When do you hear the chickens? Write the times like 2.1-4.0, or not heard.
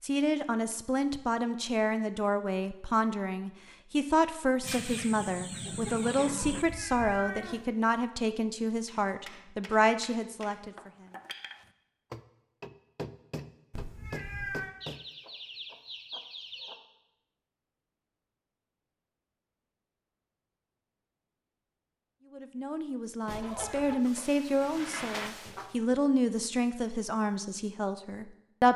4.6-6.7, 14.8-16.8, 23.2-25.8.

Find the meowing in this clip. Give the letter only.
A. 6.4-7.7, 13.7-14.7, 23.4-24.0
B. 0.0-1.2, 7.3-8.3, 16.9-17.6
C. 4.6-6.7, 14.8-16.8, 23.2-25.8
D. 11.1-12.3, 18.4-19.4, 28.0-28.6
A.